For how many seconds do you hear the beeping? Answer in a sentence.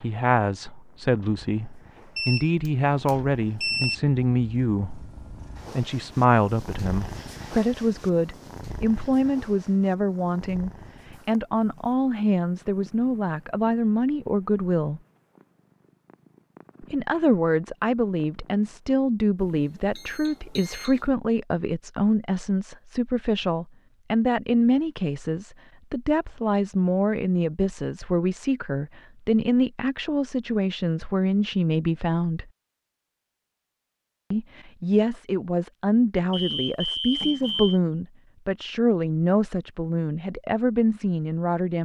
The beeping can be heard for 5 seconds in total.